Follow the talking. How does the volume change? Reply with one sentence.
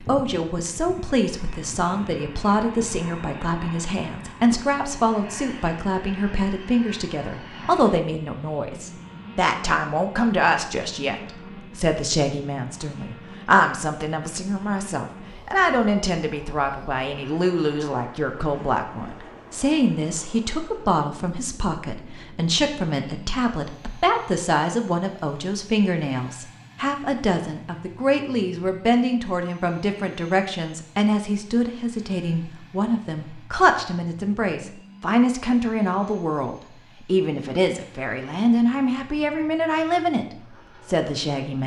The loudness of the talking stays about the same.